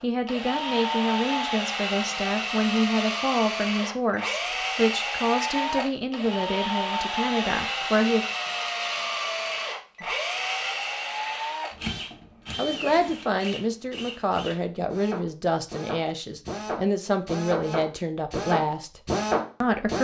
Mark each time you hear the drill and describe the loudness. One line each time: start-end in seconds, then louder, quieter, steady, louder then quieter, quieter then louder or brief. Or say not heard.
0.2-19.9 quieter then louder.